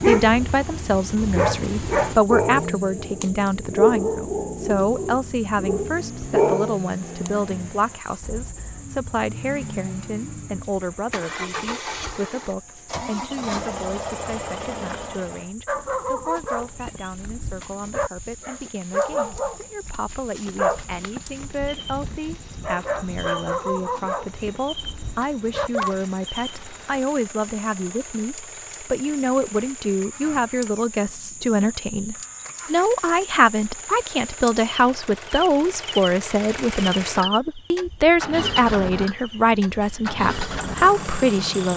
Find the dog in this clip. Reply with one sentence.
The dog can be heard from 0.0 to 7.3 s and from 15.7 to 25.9 s.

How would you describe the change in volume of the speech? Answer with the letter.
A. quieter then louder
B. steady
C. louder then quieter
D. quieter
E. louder
A.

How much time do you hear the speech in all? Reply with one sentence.
The speech can be heard for 42 seconds in total.